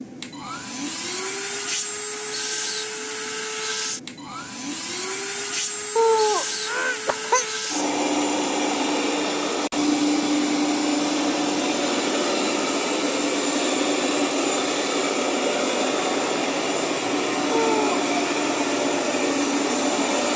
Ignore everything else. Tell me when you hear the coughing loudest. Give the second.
6 s.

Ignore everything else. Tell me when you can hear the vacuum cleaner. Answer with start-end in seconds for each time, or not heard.
0.0-20.3.